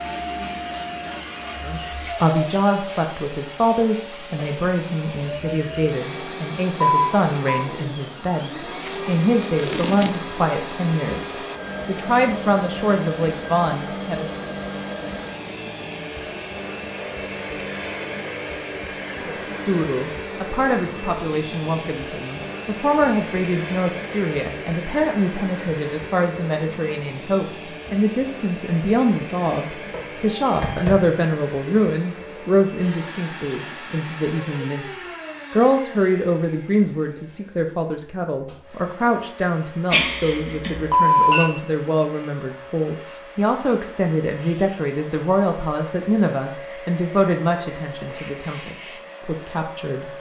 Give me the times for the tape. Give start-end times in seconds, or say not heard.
8.8-10.3.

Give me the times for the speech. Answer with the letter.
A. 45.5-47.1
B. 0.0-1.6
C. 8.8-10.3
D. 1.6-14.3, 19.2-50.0
D.